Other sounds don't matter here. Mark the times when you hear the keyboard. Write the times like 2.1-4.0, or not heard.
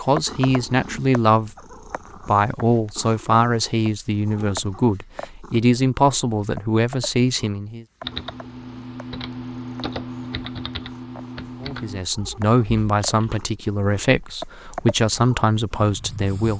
8.0-13.4.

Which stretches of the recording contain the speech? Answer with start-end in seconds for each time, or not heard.
0.0-1.6, 2.2-7.8, 11.6-16.5.